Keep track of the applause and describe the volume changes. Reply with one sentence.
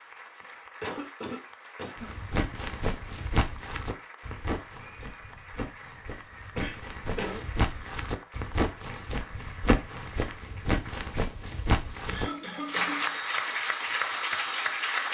The volume of the applause goes up.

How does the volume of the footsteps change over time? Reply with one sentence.
The loudness of the footsteps goes down, then up.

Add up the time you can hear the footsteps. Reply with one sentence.
The footsteps can be heard for 10 seconds in total.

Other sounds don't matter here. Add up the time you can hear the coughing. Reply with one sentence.
The coughing can be heard for 4 seconds in total.